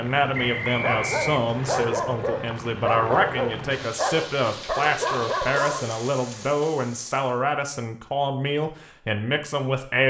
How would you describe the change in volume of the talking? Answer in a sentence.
The volume of the talking stays about the same.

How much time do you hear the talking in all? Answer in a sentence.
You can hear the talking for 10 seconds altogether.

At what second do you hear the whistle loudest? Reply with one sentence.
The volume of the whistle peaks at 1 second.